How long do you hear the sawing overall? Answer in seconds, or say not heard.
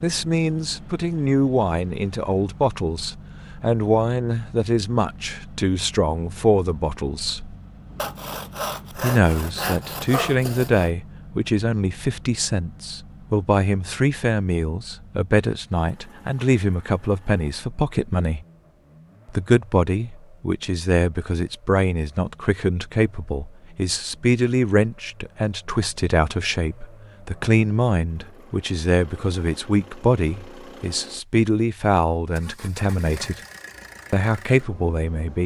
3 s.